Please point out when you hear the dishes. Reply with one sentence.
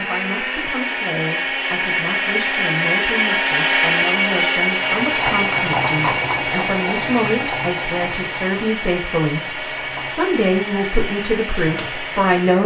The dishes can't be heard in this clip.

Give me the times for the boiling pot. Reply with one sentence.
The boiling pot can be heard from 4.8 to 12.6 s.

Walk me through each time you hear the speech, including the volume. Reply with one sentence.
The speech can be heard from 0.0 to 12.6 s, getting louder.